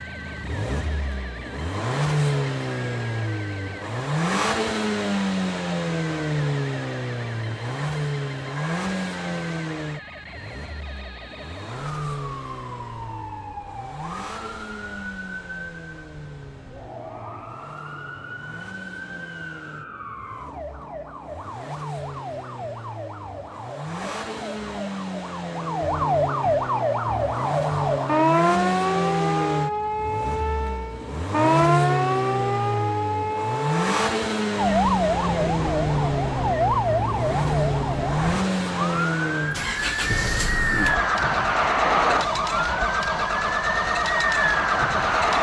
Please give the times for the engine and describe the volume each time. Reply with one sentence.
You can hear the engine from 0.0 to 45.3 s, getting quieter then louder.